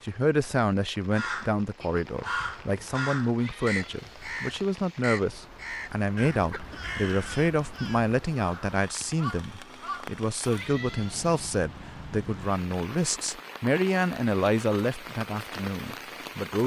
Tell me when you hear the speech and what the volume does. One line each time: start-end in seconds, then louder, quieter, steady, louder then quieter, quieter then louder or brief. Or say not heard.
0.0-16.6 steady.